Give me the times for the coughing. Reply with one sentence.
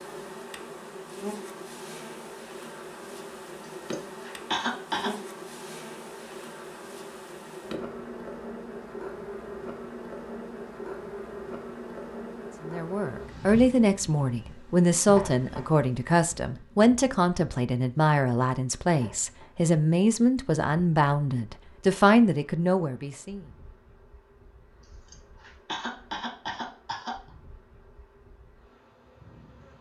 You can hear the coughing from 3.9 to 5.1 s and from 25.1 to 27.2 s.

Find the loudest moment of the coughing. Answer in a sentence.
The loudest moment of the coughing is at 5 seconds.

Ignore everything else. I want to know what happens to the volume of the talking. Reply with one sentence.
The loudness of the talking stays about the same.